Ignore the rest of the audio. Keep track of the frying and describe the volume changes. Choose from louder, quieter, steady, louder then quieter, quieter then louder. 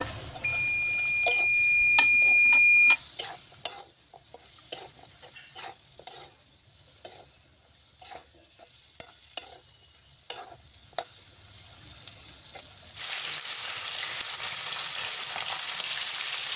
quieter then louder.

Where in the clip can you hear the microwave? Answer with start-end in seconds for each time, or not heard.
0.5-3.0.